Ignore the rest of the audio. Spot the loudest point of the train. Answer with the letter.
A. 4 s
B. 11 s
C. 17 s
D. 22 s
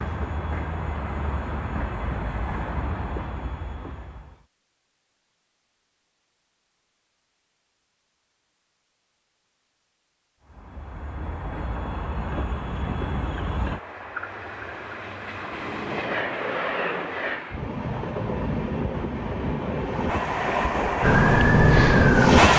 D.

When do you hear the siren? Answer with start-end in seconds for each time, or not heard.
21.0-22.4.